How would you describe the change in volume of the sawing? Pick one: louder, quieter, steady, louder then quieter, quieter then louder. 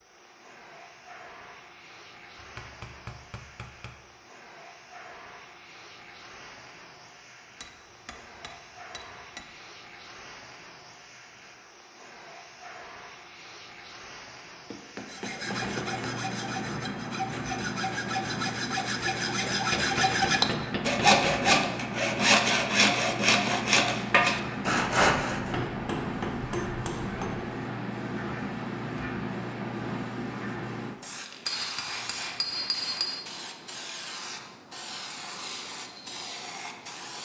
louder.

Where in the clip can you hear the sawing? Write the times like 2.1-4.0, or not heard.
15.1-25.6.